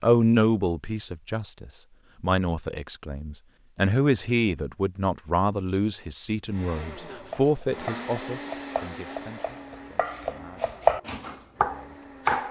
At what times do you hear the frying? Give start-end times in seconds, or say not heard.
not heard.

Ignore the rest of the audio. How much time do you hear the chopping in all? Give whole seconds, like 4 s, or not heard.
5 s.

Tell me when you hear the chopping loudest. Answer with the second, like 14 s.
11 s.